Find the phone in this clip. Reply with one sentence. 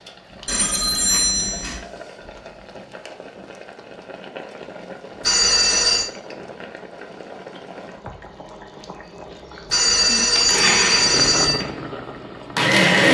You can hear the phone from 0.5 to 1.8 s, from 5.2 to 6.1 s and from 9.7 to 11.6 s.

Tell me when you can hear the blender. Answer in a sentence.
You can hear the blender from 10.3 to 13.1 s.